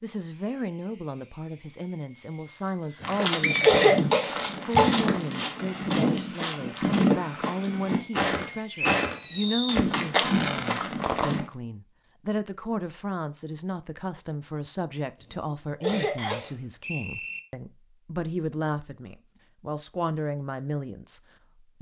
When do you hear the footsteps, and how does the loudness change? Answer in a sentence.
You can hear the footsteps from 3.0 to 11.4 s, at a steady volume.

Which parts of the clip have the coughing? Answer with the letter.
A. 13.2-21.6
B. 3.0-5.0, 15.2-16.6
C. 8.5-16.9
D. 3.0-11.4
B.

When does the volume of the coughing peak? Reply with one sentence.
The loudest moment of the coughing is at 4 seconds.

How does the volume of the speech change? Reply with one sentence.
The volume of the speech stays about the same.